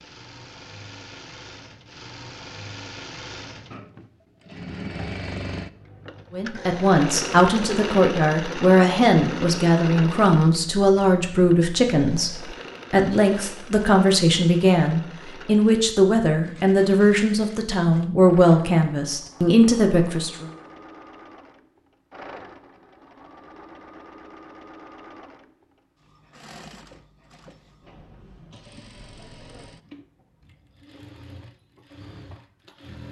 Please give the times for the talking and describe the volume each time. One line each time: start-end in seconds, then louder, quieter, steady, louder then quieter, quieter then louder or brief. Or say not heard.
6.3-20.4 steady.